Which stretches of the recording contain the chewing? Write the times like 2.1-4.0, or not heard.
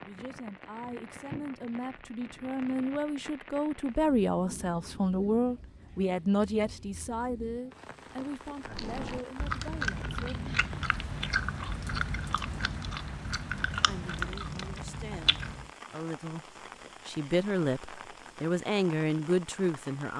8.7-15.7.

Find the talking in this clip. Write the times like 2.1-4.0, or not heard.
0.0-10.6, 13.7-20.1.